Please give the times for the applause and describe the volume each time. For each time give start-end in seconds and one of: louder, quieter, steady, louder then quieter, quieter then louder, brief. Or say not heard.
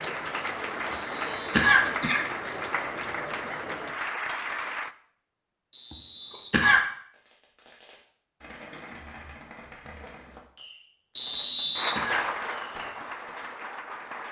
0.0-5.0 steady
11.8-14.2 brief.